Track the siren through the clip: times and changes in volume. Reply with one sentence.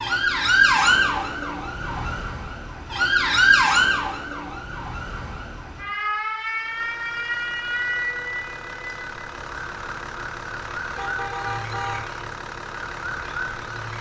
You can hear the siren from 0.0 to 13.9 s, getting quieter.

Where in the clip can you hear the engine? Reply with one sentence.
The engine can be heard from 6.5 to 13.9 s.